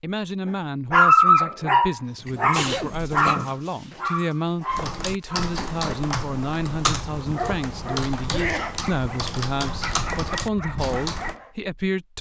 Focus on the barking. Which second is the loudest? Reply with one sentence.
The loudest moment of the barking is at 1 second.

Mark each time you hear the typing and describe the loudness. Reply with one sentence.
You can hear the typing from 4.7 to 11.4 s, at a steady volume.